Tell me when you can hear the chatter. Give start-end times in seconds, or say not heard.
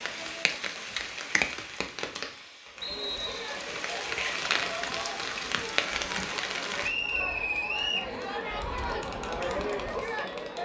2.7-10.5.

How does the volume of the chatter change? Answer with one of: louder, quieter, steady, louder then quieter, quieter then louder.
louder.